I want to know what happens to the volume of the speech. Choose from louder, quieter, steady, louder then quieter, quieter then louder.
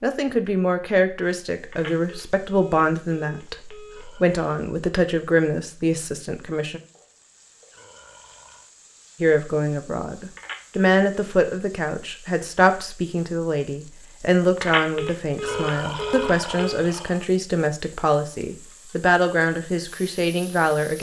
steady.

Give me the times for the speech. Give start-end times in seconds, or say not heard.
0.0-6.8, 9.2-20.9.